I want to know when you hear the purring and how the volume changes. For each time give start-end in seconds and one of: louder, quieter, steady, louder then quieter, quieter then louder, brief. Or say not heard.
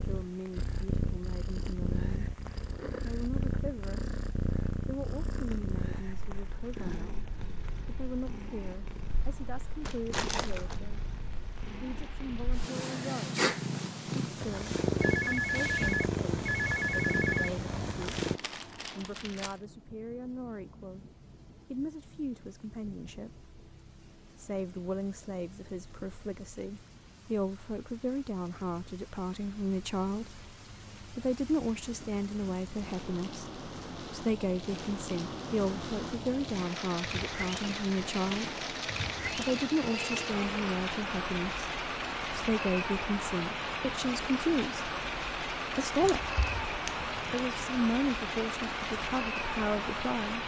0.0-18.4 quieter then louder.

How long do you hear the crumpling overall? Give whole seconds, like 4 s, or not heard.
4 s.